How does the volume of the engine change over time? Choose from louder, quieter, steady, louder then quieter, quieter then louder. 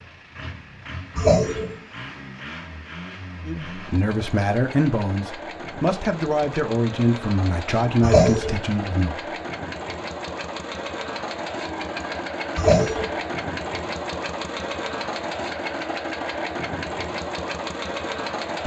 louder.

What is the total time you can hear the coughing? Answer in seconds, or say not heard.
2 s.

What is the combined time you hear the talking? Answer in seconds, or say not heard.
6 s.